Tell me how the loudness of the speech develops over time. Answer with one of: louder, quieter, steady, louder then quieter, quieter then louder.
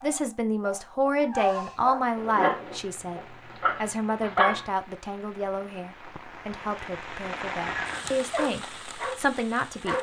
quieter then louder.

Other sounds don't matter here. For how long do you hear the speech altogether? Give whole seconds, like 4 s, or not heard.
10 s.